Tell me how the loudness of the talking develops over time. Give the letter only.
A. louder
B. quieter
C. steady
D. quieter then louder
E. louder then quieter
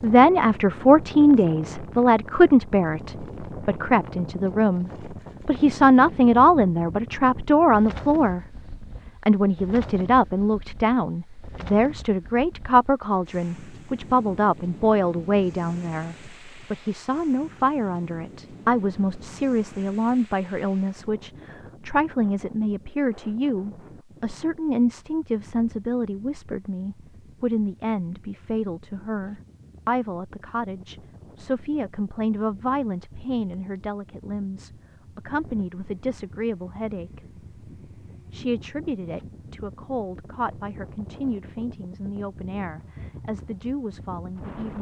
B.